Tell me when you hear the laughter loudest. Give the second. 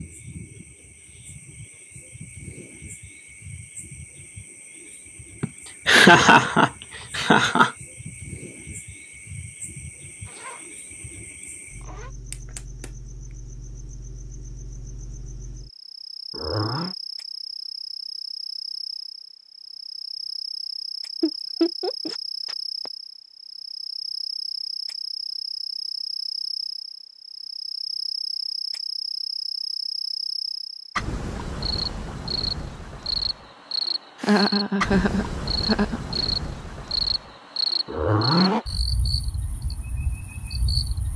6 s.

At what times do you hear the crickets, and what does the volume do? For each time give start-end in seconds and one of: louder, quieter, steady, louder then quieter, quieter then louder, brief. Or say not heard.
0.0-41.1 louder.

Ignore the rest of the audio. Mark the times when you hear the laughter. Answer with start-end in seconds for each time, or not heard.
5.4-7.7, 21.2-22.9, 34.2-36.0.